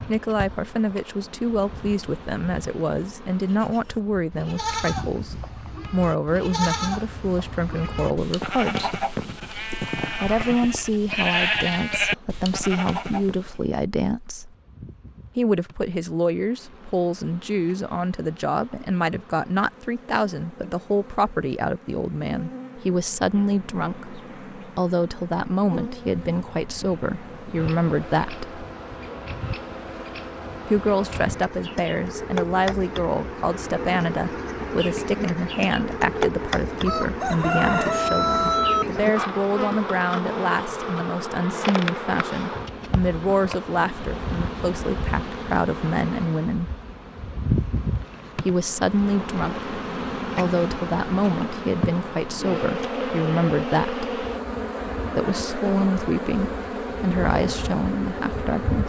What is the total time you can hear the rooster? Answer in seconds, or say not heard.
2 s.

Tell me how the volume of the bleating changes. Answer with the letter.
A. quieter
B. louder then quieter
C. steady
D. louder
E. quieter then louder
D.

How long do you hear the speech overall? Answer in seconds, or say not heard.
52 s.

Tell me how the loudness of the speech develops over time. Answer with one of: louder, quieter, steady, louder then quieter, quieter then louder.
steady.